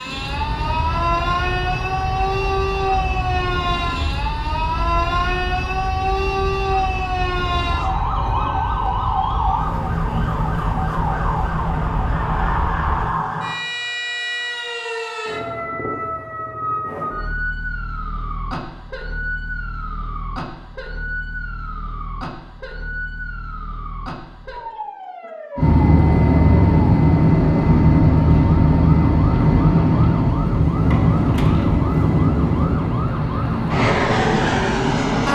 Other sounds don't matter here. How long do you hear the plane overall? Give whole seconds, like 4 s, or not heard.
23 s.